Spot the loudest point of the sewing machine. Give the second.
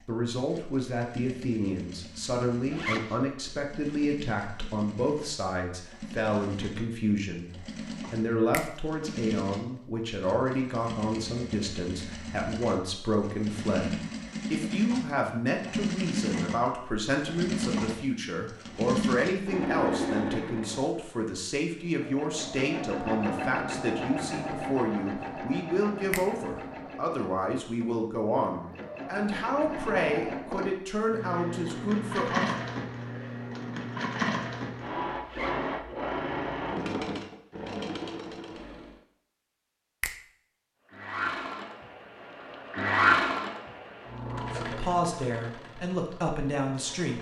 43 s.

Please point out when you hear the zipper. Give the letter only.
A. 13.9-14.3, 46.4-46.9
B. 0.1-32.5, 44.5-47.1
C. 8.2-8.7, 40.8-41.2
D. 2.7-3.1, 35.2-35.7
D.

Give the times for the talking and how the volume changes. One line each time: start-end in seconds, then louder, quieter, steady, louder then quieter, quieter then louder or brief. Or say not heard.
0.1-32.5 steady
44.5-47.1 brief.